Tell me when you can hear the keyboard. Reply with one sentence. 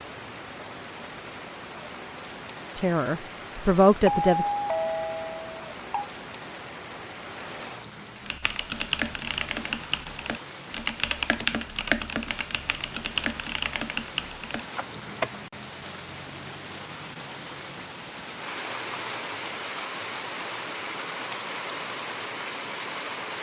You can hear the keyboard from 8.2 to 15.4 s.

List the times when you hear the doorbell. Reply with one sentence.
You can hear the doorbell from 4.0 to 6.1 s and from 20.8 to 21.4 s.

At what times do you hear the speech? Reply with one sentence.
You can hear the speech from 2.8 to 4.5 s.